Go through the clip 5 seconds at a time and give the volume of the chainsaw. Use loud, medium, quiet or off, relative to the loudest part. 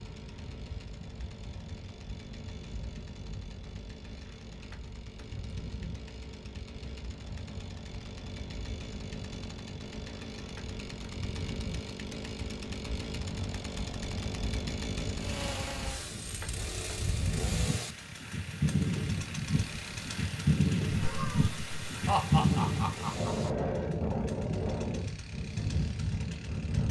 medium, medium, loud, loud, medium, medium.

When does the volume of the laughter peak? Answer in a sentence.
The loudest moment of the laughter is at 22 seconds.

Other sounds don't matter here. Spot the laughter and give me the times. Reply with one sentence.
You can hear the laughter from 20.9 to 23.5 s.